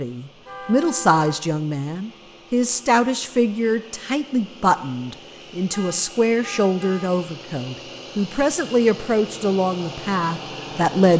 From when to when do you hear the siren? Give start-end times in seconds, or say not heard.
not heard.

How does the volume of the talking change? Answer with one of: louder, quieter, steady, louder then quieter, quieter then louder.
steady.